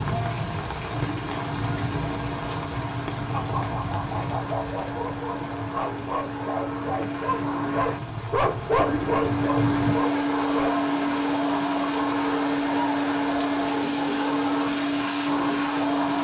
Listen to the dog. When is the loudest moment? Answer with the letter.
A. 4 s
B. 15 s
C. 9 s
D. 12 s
C.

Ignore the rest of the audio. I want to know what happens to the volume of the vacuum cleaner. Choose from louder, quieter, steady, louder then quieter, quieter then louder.
louder.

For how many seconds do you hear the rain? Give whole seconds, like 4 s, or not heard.
16 s.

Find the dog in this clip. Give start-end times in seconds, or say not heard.
3.3-10.8.